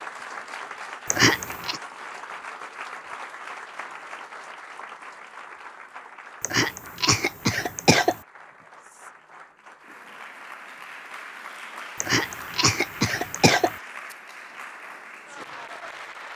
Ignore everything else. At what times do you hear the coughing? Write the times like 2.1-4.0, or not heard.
1.1-1.8, 6.4-8.2, 12.0-13.8.